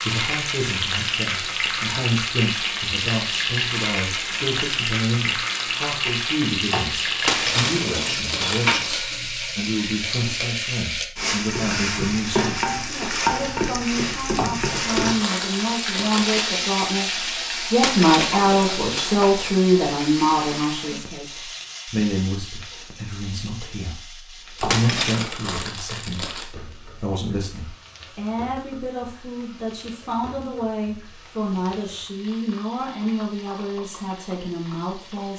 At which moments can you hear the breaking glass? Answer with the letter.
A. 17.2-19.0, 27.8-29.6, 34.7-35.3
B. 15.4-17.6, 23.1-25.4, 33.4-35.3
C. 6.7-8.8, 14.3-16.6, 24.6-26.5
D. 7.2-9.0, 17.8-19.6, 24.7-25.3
D.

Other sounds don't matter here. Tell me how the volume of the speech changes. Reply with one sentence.
The volume of the speech goes up, then down.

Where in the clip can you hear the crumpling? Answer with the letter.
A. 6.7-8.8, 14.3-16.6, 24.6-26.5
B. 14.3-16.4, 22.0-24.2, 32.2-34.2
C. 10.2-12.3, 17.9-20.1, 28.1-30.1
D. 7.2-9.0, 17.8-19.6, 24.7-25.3
A.